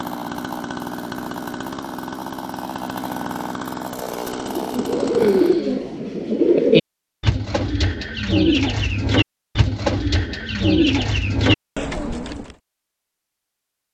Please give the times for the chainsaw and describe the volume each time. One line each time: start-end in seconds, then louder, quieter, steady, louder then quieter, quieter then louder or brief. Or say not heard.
0.0-5.6 steady.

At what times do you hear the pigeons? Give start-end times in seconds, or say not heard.
4.5-12.6.